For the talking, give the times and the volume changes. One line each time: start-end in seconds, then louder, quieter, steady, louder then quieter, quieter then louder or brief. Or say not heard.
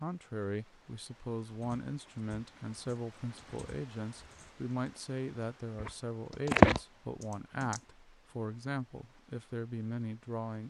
0.0-10.6 steady.